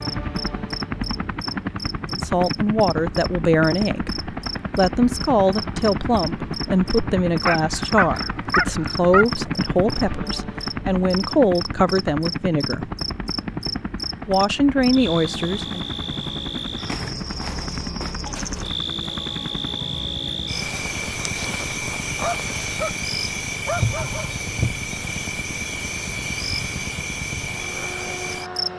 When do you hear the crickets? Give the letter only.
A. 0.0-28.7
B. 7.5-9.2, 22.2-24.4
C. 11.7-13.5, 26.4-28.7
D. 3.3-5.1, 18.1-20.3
A.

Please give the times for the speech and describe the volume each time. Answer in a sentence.
The speech can be heard from 2.1 to 12.9 s, at a steady volume; and briefly from 14.2 to 15.8 s.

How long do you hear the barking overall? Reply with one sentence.
The barking can be heard for 4 seconds in total.